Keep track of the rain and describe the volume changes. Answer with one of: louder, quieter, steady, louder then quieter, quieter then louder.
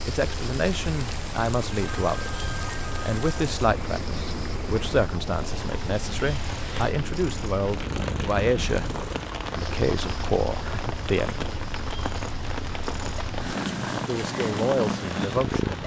steady.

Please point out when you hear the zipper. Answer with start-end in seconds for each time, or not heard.
not heard.